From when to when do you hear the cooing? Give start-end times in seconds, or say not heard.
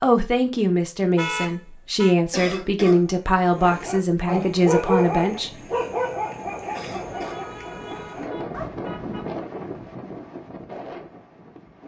not heard.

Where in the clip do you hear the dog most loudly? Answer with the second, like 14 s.
5 s.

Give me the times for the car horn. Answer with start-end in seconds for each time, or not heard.
1.1-2.1, 7.2-9.3.